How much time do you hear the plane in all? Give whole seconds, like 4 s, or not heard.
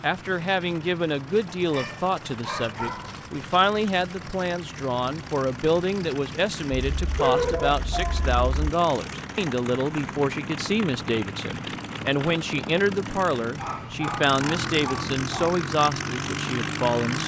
17 s.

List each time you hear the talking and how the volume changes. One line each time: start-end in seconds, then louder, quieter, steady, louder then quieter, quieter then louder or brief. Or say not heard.
0.0-17.2 steady.